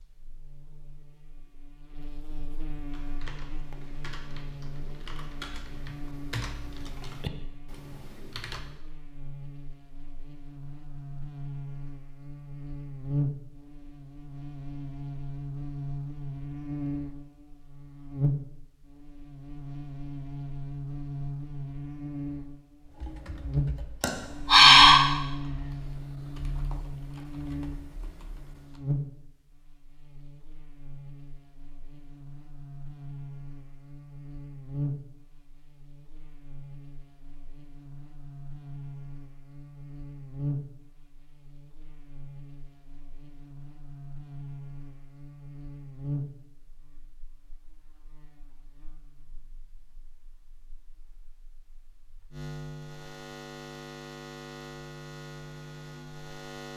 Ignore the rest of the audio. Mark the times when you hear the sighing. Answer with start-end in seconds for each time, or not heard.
24.0-25.0.